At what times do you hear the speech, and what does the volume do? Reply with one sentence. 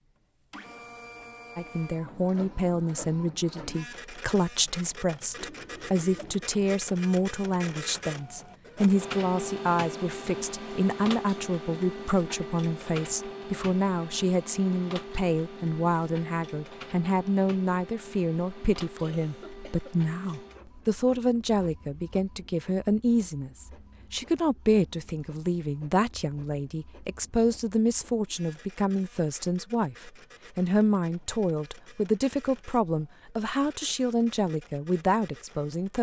You can hear the speech from 1.6 to 35.9 s, at a steady volume.